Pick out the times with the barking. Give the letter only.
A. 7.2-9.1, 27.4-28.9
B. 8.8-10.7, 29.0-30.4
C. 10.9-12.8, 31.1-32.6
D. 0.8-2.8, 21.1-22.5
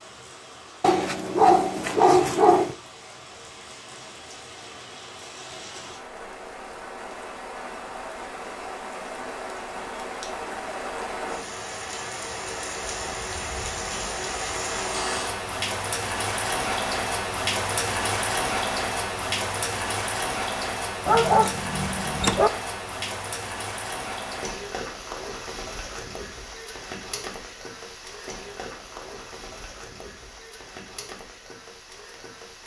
D.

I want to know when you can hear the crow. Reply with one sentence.
The crow can't be heard in this clip.